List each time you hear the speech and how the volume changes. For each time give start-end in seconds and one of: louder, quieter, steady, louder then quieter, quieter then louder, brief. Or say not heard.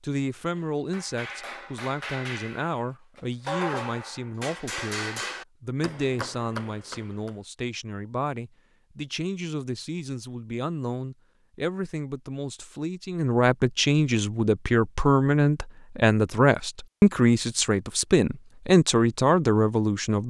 0.0-20.2 louder.